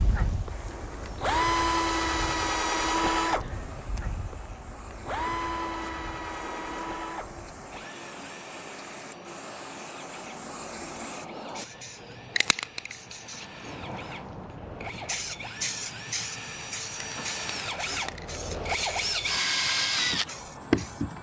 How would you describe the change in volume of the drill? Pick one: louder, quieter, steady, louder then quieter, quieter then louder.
quieter then louder.